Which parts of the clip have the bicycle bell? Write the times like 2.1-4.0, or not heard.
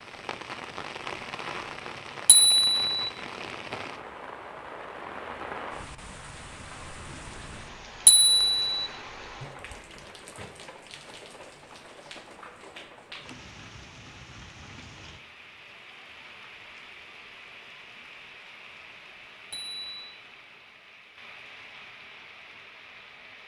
2.2-2.9, 8.1-8.8, 19.5-20.1.